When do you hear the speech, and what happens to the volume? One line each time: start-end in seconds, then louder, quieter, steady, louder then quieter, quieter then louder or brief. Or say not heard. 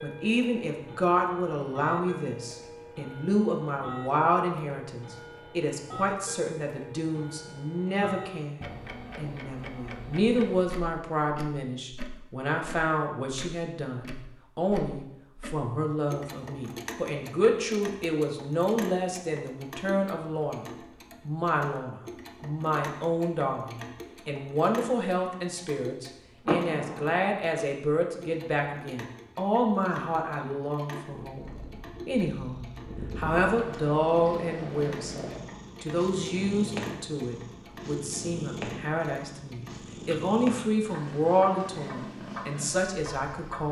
0.0-43.6 steady.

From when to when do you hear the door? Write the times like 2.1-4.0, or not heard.
26.4-27.2.